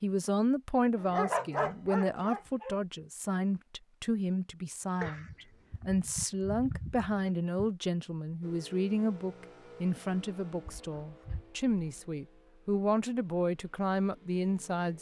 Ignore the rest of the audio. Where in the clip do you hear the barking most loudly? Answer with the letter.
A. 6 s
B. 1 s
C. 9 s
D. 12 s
B.